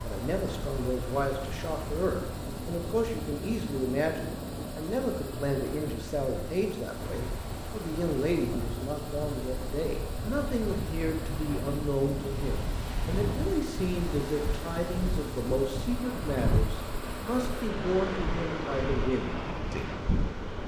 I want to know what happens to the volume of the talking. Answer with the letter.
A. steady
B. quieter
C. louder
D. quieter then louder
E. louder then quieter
A.